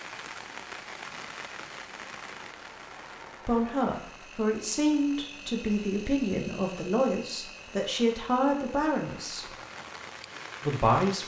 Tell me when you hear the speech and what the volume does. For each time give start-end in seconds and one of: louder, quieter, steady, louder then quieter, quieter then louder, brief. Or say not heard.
3.5-9.4 steady
10.7-11.2 brief.